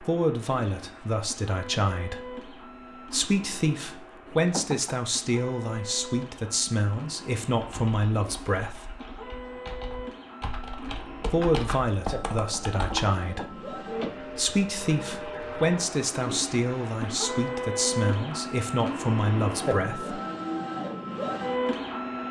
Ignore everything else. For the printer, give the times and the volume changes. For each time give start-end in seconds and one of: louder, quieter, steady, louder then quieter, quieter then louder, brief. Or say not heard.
0.0-22.2 louder.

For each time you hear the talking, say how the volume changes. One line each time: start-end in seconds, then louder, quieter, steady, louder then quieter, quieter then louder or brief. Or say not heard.
0.0-8.9 steady
11.2-20.2 steady.